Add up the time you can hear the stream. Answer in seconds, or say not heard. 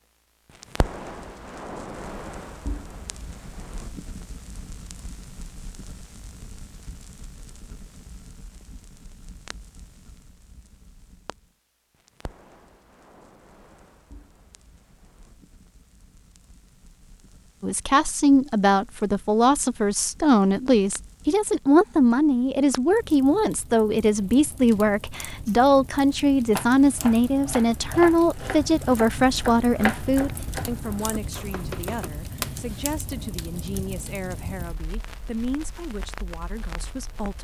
not heard.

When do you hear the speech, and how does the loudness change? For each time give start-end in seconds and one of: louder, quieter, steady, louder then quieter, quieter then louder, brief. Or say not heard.
17.6-37.3 quieter.